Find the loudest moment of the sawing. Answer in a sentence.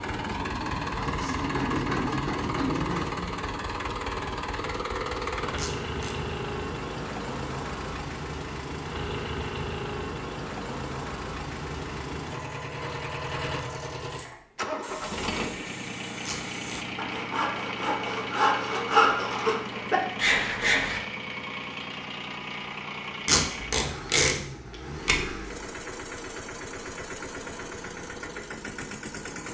The loudest moment of the sawing is at 19 seconds.